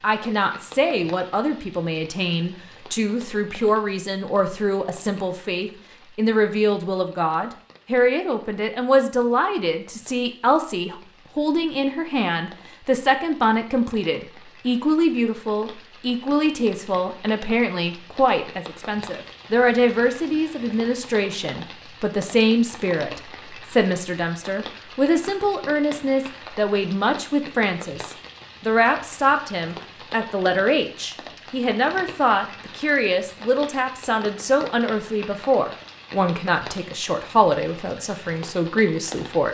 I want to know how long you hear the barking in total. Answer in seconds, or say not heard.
not heard.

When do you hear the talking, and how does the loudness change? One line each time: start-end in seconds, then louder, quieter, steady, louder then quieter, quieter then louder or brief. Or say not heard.
0.0-39.5 steady.